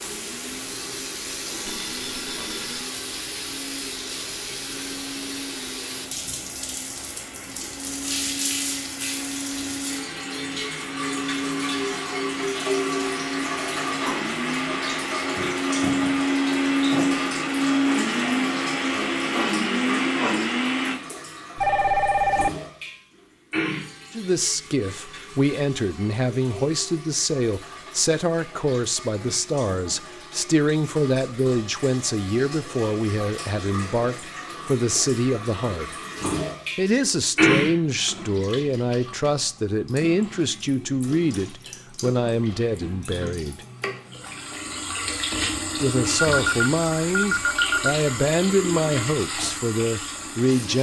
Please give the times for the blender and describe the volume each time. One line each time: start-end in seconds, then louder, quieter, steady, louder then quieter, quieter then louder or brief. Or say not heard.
0.0-20.9 louder.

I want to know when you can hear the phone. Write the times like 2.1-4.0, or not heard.
1.6-2.9, 21.6-22.5, 46.3-48.0.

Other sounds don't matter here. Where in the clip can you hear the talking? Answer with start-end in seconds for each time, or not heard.
24.1-35.9, 36.8-43.6, 45.8-50.7.